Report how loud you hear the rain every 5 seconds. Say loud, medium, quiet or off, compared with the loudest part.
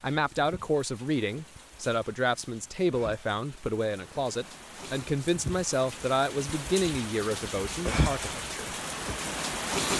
quiet, loud.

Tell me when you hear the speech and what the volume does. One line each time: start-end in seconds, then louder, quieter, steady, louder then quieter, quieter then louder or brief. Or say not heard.
0.0-8.7 steady.